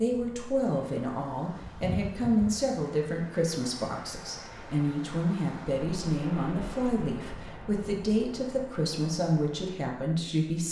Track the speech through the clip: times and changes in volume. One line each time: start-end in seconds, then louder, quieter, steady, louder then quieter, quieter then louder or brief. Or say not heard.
0.0-10.6 steady.